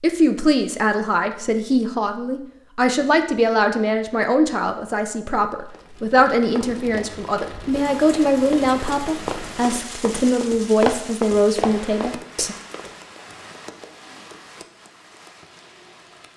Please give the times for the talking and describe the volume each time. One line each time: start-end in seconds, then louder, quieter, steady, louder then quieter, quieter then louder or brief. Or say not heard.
0.0-12.6 steady.